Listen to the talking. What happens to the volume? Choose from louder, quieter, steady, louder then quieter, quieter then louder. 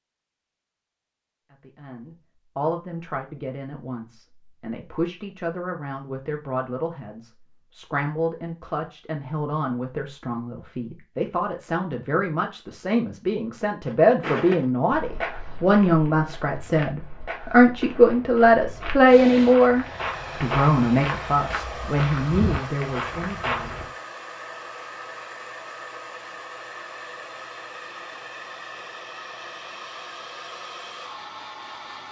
louder.